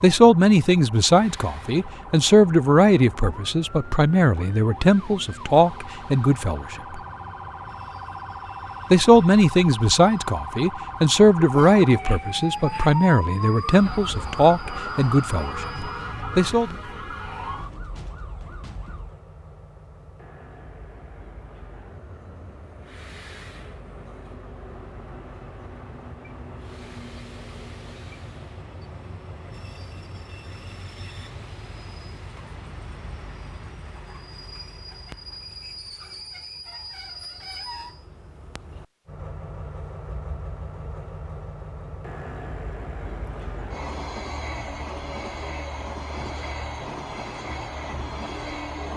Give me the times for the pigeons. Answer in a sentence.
You can't hear the pigeons here.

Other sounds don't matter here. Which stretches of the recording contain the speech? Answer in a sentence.
You can hear the speech from 0.0 to 7.0 s and from 8.9 to 16.8 s.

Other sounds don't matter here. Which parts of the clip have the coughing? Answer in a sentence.
The coughing can't be heard in this clip.